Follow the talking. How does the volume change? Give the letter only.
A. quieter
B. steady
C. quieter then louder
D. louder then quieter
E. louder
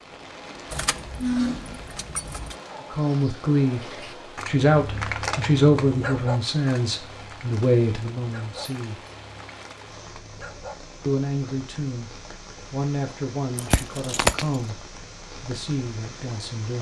A.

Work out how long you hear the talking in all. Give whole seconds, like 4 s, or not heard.
12 s.